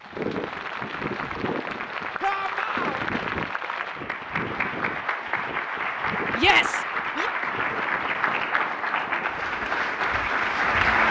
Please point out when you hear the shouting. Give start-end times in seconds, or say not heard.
2.2-3.0, 6.3-7.3.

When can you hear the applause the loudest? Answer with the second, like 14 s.
11 s.